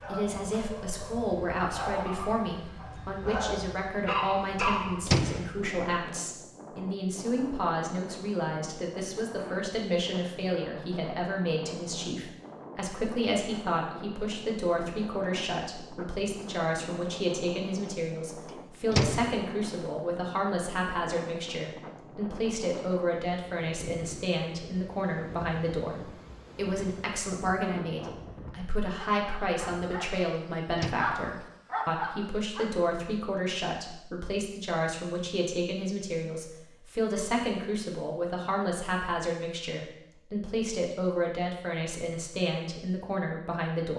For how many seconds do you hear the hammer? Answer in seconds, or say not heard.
not heard.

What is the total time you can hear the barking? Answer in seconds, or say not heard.
9 s.